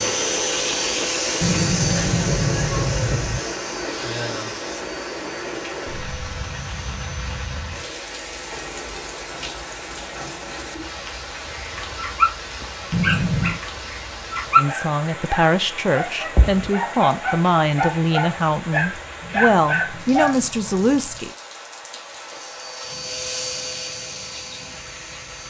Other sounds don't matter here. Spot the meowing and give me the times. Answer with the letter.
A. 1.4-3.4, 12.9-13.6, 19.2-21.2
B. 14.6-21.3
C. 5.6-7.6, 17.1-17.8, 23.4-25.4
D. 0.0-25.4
A.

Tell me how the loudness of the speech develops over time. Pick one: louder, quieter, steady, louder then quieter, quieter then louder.
steady.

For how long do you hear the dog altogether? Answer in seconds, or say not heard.
9 s.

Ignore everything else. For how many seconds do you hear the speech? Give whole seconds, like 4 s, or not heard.
7 s.